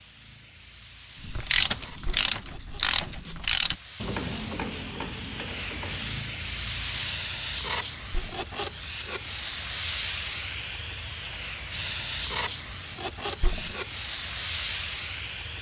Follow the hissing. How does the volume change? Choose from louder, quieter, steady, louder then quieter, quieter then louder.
louder.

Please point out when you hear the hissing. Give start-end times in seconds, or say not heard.
0.0-15.5.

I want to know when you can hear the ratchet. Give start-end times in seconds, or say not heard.
1.2-6.2.